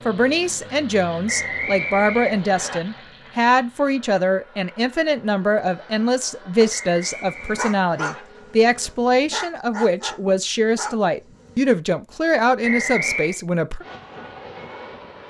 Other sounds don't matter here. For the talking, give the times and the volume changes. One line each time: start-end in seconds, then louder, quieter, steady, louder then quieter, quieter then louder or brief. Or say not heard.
0.1-13.8 steady.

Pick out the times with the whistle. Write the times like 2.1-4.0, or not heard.
1.2-2.8, 6.7-8.2, 12.6-13.4.